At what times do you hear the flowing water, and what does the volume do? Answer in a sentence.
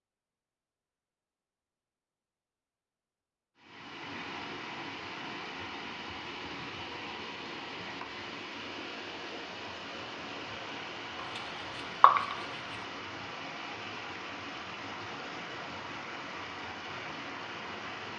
The flowing water can be heard from 3.5 to 18.1 s, at a steady volume.